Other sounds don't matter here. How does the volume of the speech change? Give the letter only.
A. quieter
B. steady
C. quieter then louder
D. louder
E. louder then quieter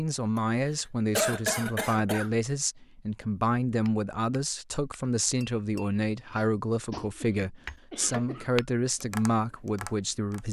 B.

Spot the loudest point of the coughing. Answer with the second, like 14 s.
1 s.